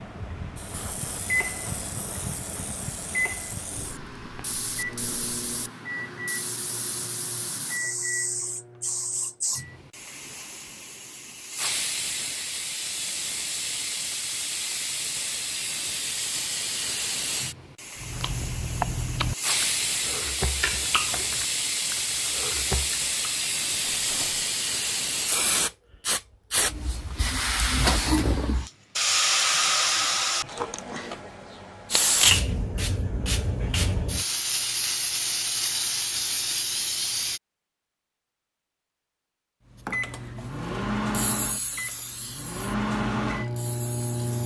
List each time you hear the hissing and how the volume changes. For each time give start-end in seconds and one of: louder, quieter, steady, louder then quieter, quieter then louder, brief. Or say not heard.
0.0-37.4 louder
39.8-44.4 louder then quieter.